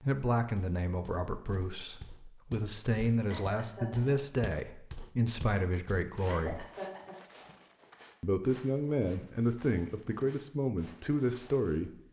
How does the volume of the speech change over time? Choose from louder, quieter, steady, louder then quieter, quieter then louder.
steady.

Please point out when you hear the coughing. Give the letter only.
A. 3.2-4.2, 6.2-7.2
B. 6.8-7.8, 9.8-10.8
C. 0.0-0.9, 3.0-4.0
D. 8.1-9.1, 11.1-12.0
A.